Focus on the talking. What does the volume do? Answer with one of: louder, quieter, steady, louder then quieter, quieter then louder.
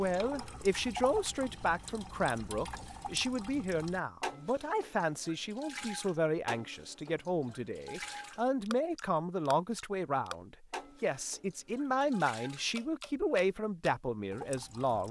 steady.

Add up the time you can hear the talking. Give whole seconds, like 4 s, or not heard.
15 s.